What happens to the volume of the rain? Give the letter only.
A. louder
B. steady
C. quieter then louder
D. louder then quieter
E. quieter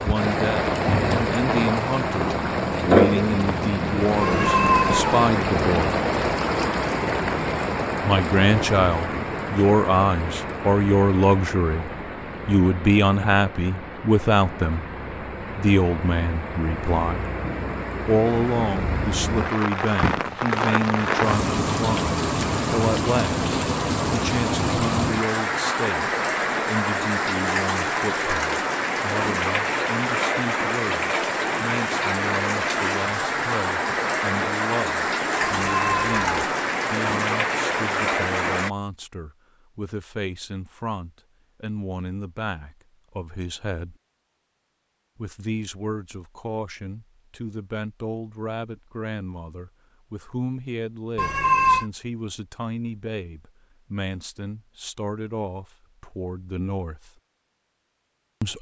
C.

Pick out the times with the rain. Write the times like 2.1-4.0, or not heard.
0.0-38.7.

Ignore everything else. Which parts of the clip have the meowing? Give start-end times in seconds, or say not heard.
4.2-5.2, 35.4-36.5, 51.1-51.9.